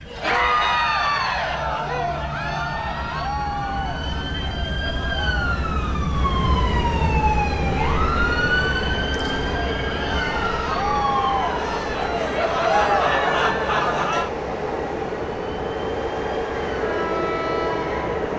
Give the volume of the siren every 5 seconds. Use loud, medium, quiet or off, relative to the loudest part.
medium, loud, medium, quiet.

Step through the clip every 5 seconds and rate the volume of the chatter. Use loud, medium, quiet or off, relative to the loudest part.
loud, medium, loud, off.